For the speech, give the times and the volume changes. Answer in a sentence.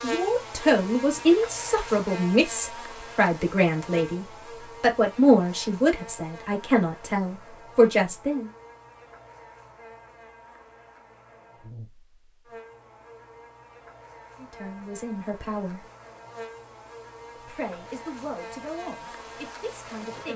You can hear the speech from 0.0 to 8.5 s, at a steady volume; briefly from 14.4 to 15.8 s; and briefly from 17.4 to 20.3 s.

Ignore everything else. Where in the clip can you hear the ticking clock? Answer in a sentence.
The ticking clock can't be heard in this clip.